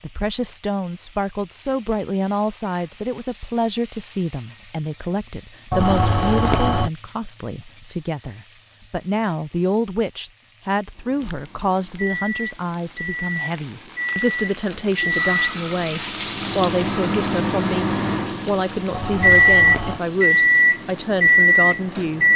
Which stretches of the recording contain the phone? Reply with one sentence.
You can hear the phone from 5.7 to 6.9 s and from 18.9 to 20.0 s.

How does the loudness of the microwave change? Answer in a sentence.
The volume of the microwave goes up.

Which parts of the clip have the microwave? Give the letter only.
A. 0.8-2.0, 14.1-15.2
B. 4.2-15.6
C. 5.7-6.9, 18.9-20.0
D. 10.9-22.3
D.